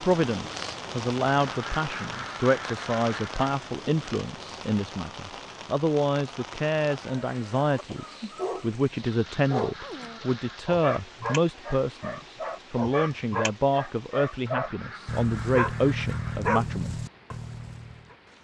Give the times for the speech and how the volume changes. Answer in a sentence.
You can hear the speech from 0.0 to 17.0 s, at a steady volume.